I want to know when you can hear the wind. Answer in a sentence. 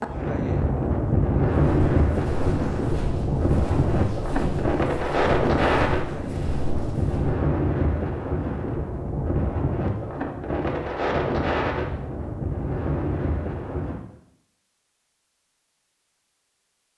The wind can be heard from 0.0 to 14.0 s.